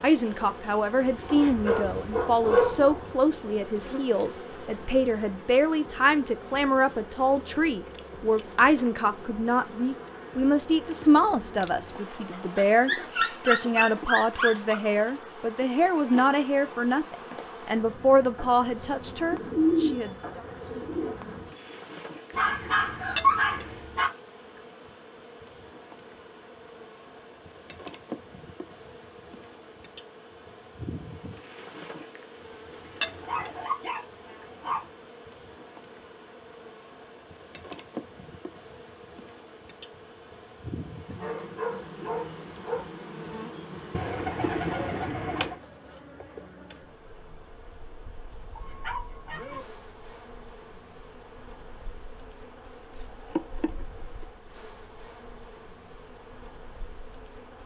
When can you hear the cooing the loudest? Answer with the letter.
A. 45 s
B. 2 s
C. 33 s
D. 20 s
D.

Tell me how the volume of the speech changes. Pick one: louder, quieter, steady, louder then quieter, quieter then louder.
steady.